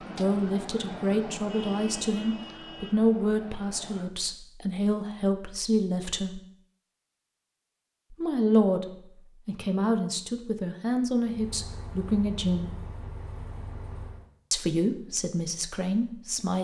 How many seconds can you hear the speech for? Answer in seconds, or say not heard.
13 s.